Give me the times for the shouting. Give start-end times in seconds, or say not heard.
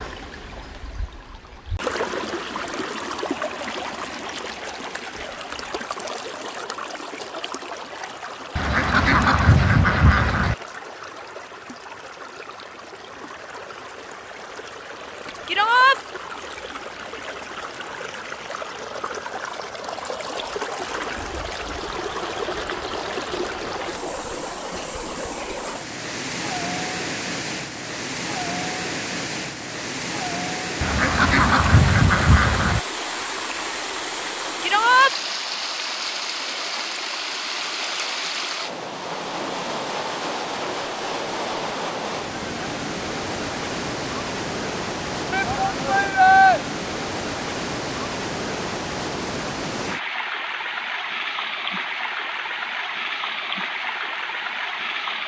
15.4-16.0, 34.6-35.1, 45.3-46.6.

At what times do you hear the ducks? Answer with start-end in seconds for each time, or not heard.
8.6-10.6, 30.8-32.8.